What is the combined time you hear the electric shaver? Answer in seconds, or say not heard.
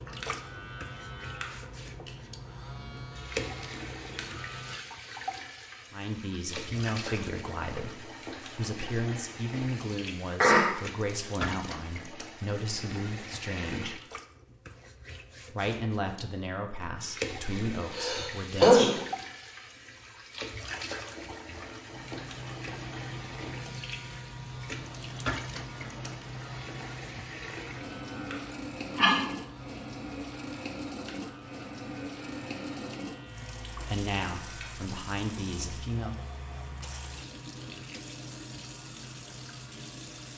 23 s.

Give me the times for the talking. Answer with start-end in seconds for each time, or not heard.
5.9-14.0, 15.5-18.8, 33.8-36.1.